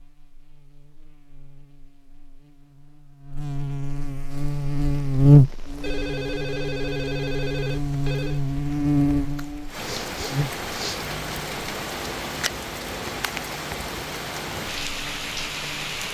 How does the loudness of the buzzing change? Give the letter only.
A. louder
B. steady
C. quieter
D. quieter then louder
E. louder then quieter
E.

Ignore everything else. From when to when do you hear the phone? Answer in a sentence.
You can hear the phone from 5.8 to 8.4 s.